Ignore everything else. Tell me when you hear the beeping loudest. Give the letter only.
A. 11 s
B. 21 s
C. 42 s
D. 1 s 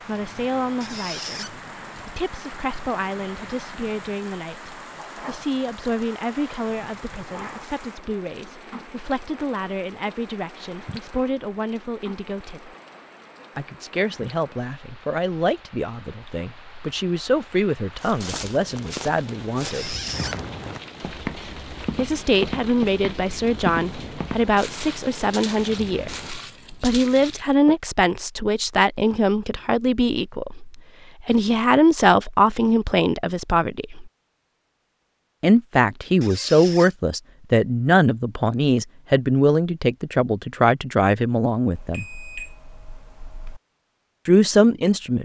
C.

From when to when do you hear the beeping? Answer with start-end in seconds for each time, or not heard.
41.7-43.6.